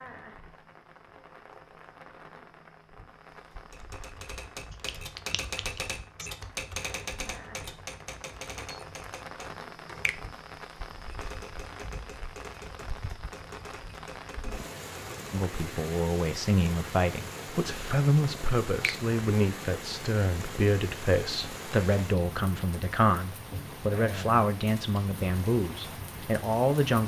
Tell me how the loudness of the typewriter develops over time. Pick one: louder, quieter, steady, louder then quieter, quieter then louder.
quieter.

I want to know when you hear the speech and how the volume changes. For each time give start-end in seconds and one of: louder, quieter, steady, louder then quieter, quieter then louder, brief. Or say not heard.
15.3-27.0 steady.